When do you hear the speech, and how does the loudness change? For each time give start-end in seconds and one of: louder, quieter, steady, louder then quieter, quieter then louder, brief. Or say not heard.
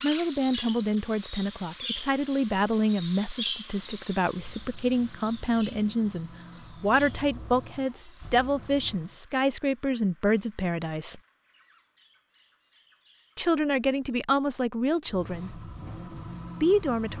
0.0-11.2 steady
13.3-15.6 brief
16.6-17.1 brief.